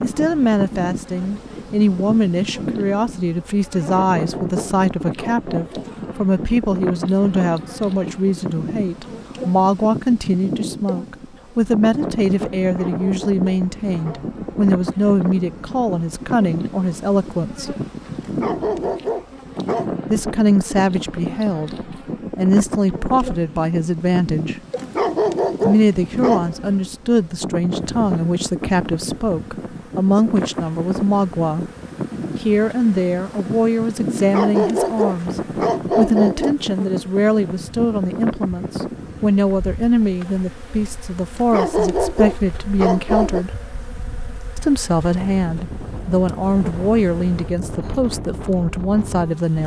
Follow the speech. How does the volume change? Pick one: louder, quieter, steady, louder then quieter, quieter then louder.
steady.